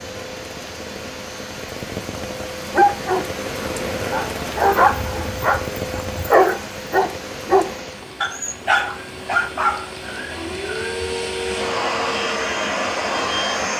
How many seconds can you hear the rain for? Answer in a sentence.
You can hear the rain for 14 seconds altogether.